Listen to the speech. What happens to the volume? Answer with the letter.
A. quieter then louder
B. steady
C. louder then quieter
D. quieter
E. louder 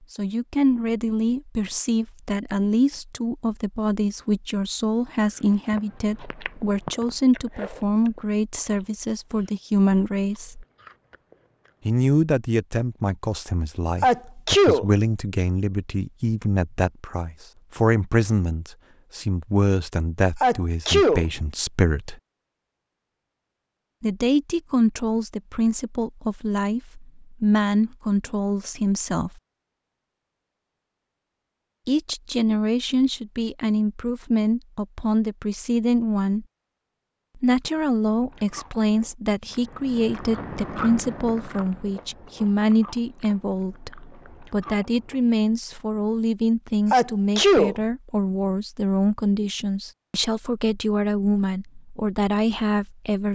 B.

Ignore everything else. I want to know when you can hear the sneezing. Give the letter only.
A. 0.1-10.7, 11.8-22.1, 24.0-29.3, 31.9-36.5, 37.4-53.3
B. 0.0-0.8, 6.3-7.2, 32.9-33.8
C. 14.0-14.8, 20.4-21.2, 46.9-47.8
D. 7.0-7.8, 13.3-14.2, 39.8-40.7
C.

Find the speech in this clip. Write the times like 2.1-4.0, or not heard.
0.1-10.7, 11.8-22.1, 24.0-29.3, 31.9-36.5, 37.4-53.3.